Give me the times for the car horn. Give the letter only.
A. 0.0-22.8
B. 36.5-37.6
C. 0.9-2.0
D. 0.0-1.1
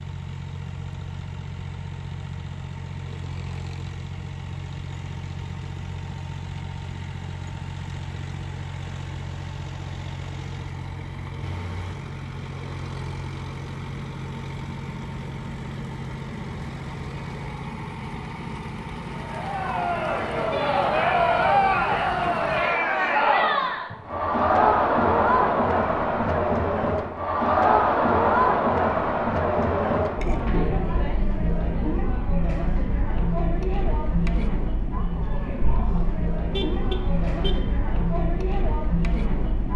B.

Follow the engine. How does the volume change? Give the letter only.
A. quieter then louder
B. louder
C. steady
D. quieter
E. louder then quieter
C.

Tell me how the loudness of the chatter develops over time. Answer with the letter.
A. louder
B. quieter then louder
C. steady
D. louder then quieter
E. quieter
E.